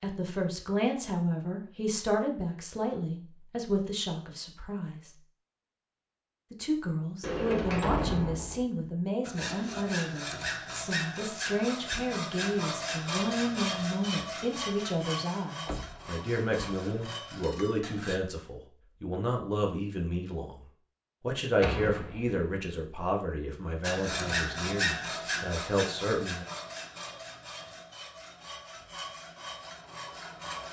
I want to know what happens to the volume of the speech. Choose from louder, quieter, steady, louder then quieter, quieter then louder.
steady.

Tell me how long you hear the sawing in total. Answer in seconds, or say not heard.
16 s.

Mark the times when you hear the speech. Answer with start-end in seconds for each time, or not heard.
0.0-5.1, 6.5-20.6, 21.2-26.4.